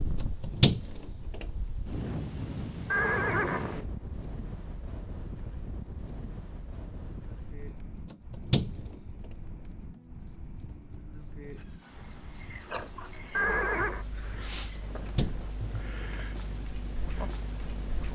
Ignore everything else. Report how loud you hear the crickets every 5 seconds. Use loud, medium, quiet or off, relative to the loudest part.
medium, loud, loud, loud.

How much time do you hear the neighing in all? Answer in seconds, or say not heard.
2 s.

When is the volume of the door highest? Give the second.
1 s.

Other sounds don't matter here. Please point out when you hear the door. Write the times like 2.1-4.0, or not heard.
0.2-1.4, 8.1-8.8, 14.8-15.3.